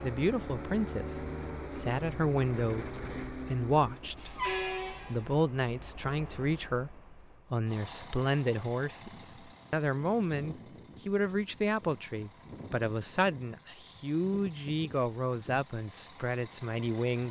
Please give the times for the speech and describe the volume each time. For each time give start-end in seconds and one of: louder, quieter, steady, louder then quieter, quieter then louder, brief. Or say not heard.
0.0-17.2 steady.